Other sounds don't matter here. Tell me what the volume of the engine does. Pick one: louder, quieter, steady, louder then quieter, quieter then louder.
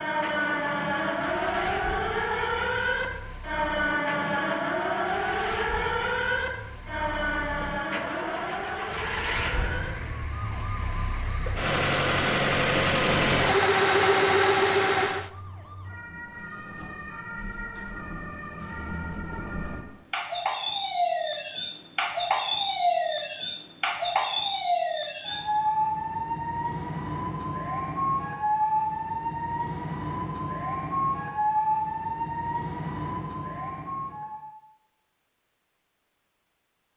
louder.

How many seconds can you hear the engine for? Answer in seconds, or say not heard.
15 s.